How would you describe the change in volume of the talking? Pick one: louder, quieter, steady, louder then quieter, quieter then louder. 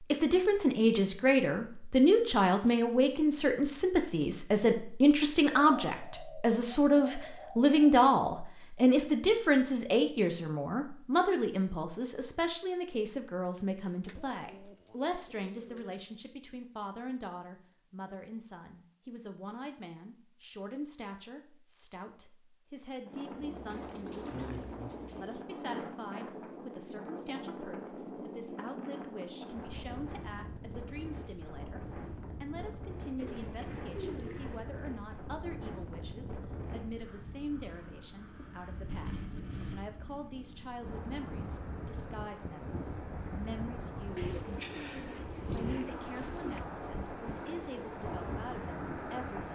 quieter.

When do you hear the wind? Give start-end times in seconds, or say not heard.
23.1-49.5.